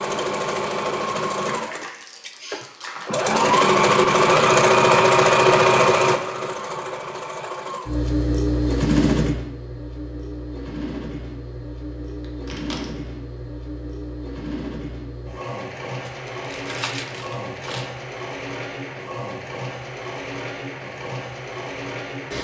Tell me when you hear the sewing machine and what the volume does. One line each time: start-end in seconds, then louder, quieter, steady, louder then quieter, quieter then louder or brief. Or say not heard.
0.0-22.3 quieter.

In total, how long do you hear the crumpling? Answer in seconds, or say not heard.
4 s.